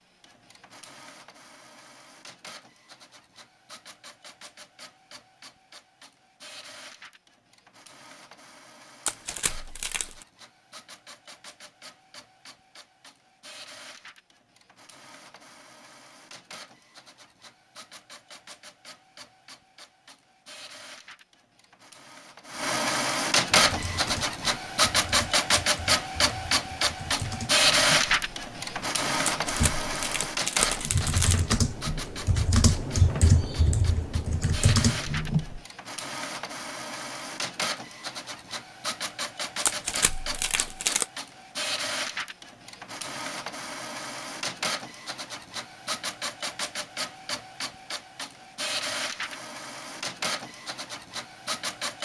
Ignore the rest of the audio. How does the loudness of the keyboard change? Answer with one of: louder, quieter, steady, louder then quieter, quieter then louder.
louder.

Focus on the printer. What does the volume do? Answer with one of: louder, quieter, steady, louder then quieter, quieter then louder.
louder then quieter.